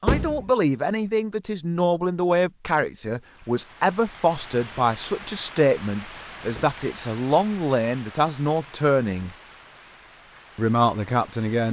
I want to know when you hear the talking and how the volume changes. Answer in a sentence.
You can hear the talking from 0.0 to 9.3 s, at a steady volume; and briefly from 10.6 to 11.6 s.